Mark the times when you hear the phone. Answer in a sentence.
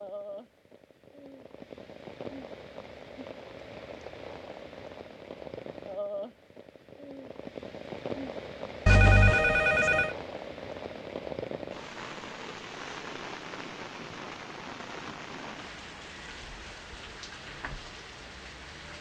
You can hear the phone from 8.8 to 10.2 s.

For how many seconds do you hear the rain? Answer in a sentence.
You can hear the rain for 19 seconds altogether.